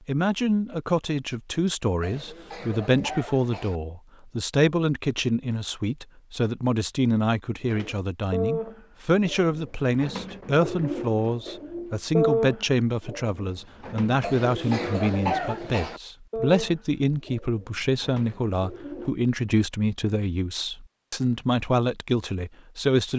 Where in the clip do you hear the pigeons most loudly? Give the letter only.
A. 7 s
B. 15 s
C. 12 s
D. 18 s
C.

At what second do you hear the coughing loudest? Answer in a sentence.
The volume of the coughing peaks at 15 seconds.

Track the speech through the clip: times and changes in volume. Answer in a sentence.
You can hear the speech from 0.1 to 23.1 s, at a steady volume.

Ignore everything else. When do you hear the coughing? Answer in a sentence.
The coughing can be heard from 2.0 to 3.8 s and from 14.2 to 16.0 s.